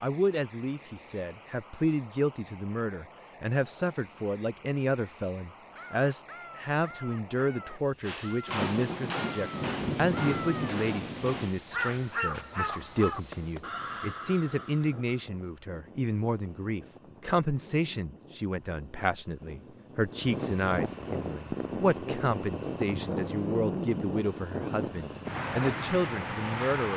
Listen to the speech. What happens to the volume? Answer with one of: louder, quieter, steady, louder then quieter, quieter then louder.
steady.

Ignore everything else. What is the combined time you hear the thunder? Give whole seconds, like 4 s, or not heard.
3 s.